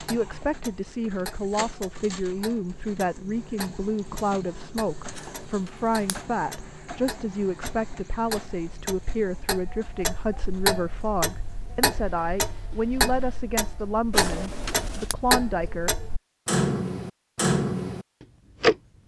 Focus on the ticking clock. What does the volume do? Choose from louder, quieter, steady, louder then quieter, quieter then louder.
louder.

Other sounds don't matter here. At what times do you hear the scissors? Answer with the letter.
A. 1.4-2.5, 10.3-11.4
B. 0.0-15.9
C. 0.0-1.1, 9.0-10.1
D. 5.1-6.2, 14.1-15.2
D.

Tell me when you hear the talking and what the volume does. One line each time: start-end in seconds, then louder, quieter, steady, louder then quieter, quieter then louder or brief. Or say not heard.
0.0-15.9 steady.